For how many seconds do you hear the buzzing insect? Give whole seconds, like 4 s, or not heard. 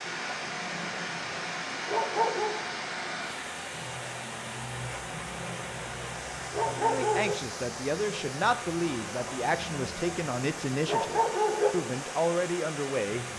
not heard.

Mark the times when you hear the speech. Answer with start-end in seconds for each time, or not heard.
6.7-13.3.